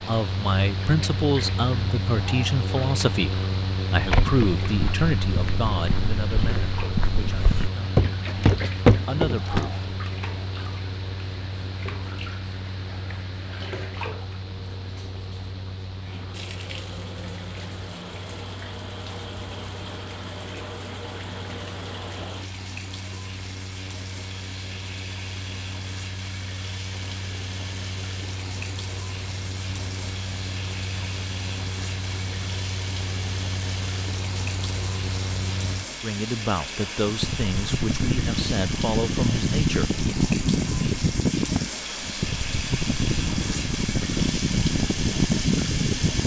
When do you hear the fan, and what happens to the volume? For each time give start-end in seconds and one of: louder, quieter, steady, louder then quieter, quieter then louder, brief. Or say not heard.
0.0-46.2 quieter then louder.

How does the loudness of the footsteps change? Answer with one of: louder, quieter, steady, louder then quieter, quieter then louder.
louder.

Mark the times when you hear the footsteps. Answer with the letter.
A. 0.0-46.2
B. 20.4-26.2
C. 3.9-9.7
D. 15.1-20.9
C.